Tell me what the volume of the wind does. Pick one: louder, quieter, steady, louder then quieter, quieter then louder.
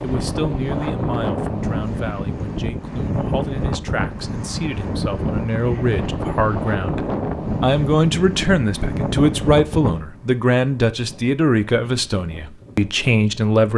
quieter.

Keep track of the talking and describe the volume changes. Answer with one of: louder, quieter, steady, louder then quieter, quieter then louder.
louder.